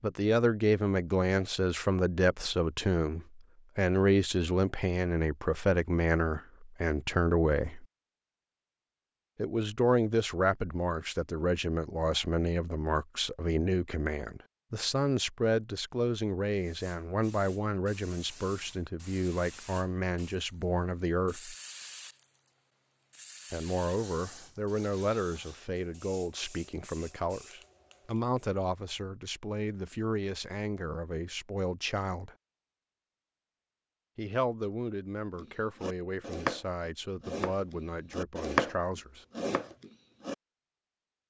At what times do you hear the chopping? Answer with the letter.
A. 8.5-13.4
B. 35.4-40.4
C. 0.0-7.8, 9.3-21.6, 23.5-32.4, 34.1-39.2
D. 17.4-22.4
B.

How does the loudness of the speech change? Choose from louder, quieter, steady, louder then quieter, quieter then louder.
quieter.